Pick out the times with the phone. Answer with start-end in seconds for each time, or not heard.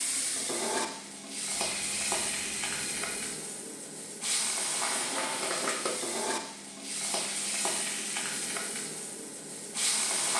1.6-3.4.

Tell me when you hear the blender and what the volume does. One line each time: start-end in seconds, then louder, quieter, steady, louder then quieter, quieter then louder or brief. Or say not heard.
not heard.